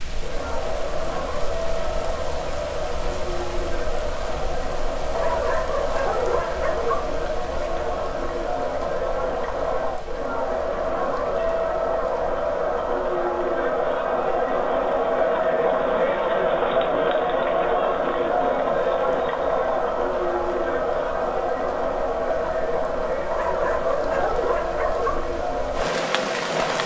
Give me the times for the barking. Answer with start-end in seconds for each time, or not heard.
5.2-7.1, 23.3-25.2.